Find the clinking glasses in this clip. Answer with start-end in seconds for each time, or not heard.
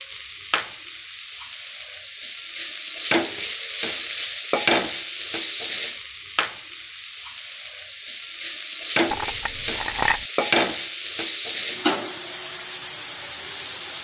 9.1-10.2.